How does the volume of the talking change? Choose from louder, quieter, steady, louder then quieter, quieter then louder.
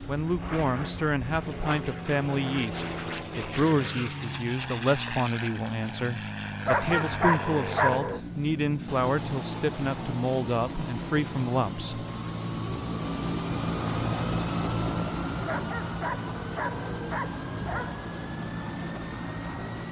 steady.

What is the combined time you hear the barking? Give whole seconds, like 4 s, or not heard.
4 s.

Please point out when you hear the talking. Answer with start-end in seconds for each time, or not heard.
0.1-12.1.